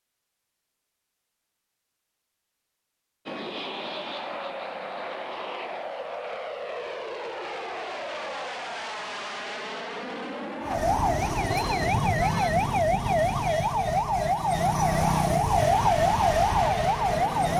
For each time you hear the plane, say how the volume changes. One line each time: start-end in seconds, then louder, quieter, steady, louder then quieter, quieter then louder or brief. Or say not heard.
3.2-11.9 steady
15.6-17.5 brief.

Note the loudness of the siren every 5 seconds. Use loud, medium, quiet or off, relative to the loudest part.
off, off, loud, loud.